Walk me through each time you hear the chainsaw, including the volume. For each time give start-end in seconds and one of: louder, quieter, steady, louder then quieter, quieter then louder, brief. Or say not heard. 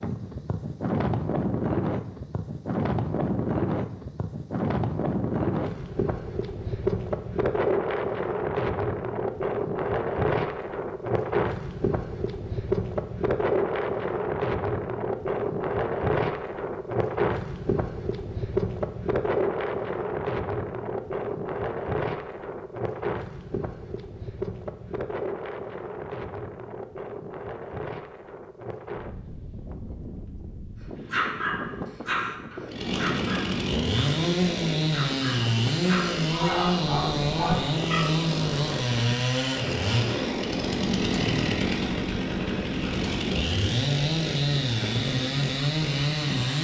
32.6-46.5 steady.